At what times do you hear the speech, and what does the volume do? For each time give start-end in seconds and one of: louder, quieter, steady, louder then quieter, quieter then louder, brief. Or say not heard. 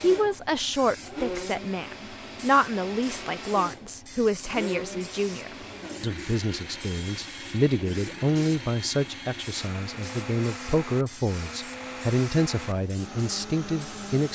0.0-14.3 steady.